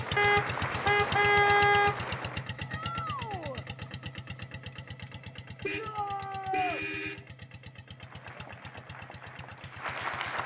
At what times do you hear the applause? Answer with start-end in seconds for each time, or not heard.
0.0-2.5, 8.0-10.4.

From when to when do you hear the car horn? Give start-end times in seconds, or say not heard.
0.1-2.0, 5.6-7.2.